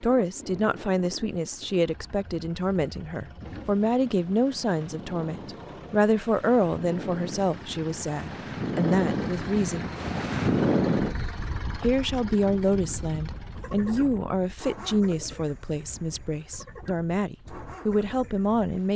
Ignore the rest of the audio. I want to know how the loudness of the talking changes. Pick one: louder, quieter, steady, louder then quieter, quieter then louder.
steady.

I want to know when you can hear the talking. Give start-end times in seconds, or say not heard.
0.0-9.9, 11.8-18.9.